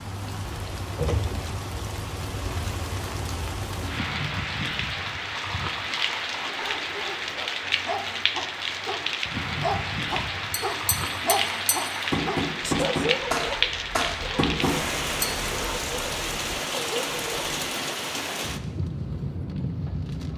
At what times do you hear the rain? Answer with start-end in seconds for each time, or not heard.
0.0-20.3.